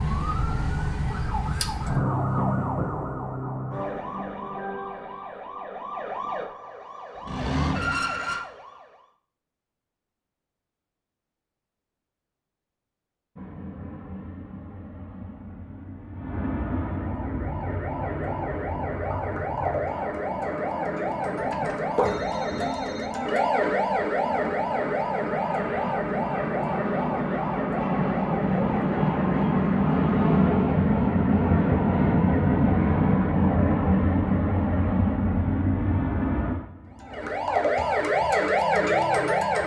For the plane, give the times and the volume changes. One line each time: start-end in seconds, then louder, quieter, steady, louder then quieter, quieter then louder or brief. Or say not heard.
13.3-39.6 louder then quieter.